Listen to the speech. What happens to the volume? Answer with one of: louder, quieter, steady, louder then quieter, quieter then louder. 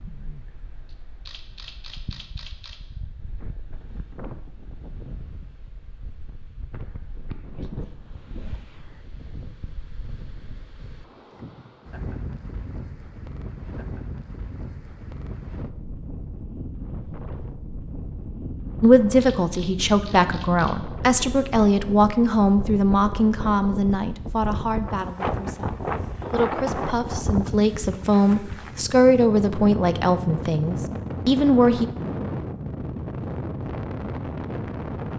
quieter then louder.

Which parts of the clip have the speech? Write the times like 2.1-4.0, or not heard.
18.8-31.9.